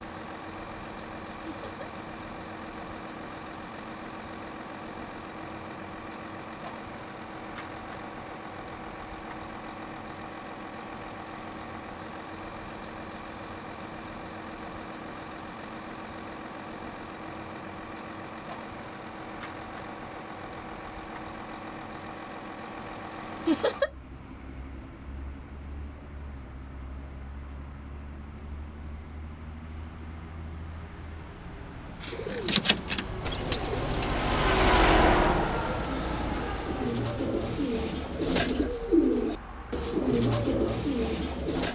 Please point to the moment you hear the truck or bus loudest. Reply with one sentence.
The loudest moment of the truck or bus is at 35 seconds.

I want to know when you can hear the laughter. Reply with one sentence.
The laughter can be heard from 1.4 to 1.9 s and from 23.4 to 23.9 s.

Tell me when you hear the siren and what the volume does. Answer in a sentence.
The siren can't be heard in this clip.